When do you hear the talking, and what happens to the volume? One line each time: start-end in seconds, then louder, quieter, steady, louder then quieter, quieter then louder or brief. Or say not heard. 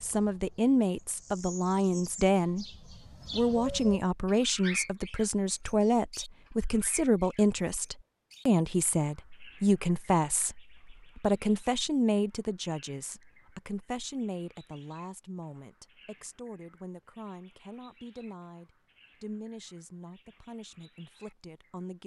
0.0-2.6 brief
3.3-22.0 quieter.